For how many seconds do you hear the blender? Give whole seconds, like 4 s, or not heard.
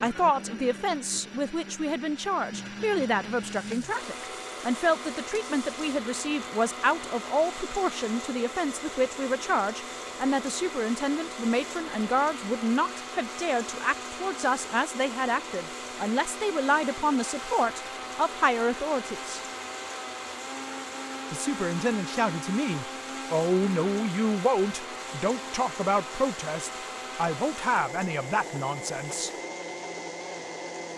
31 s.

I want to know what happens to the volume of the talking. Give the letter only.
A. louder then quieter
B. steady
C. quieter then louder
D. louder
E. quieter
B.